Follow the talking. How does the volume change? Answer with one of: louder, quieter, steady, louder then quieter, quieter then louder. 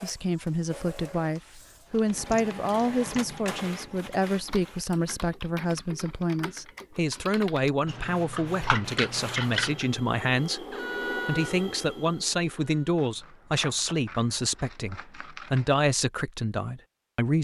steady.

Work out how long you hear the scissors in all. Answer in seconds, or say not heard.
7 s.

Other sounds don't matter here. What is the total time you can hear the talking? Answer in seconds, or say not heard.
17 s.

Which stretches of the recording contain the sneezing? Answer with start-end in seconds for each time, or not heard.
not heard.